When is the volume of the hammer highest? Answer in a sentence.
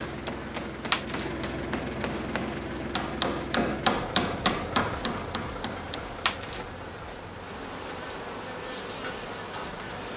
The volume of the hammer peaks at 4 seconds.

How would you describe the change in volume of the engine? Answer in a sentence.
The volume of the engine goes down.